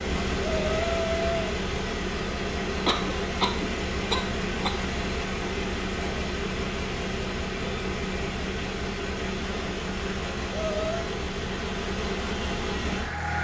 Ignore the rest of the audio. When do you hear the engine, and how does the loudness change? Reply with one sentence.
You can hear the engine from 0.0 to 13.3 s, at a steady volume.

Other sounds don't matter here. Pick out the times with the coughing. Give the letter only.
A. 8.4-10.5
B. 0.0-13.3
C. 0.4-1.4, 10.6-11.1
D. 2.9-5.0
D.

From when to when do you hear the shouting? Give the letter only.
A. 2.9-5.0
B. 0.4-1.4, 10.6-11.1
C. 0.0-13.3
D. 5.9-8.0
B.